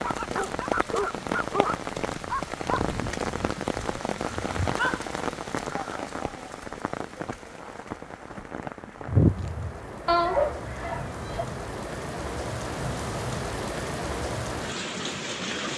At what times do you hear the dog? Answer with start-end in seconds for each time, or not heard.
0.0-5.2, 9.1-11.4.